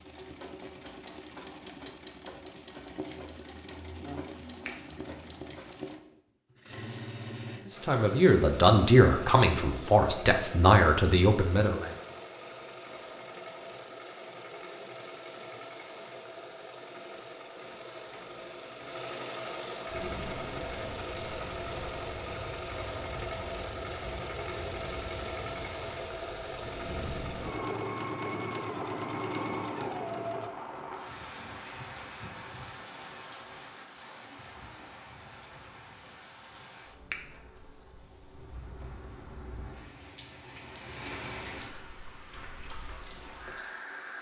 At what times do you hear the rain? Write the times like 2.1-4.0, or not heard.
19.9-44.1.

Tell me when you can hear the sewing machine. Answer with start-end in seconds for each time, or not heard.
0.0-30.5.